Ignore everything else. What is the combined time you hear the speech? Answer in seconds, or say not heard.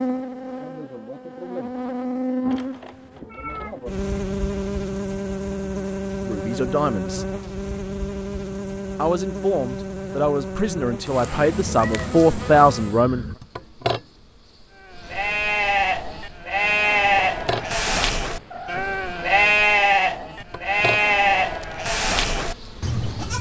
5 s.